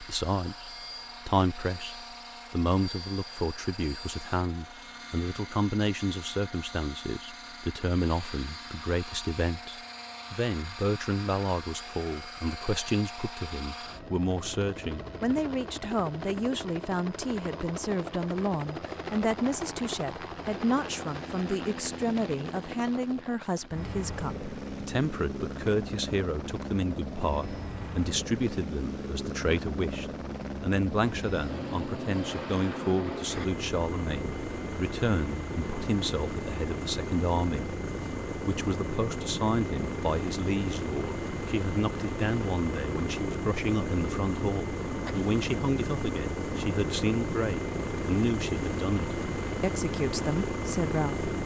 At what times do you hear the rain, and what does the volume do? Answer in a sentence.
You can't hear the rain here.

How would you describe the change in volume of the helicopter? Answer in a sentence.
The loudness of the helicopter goes up.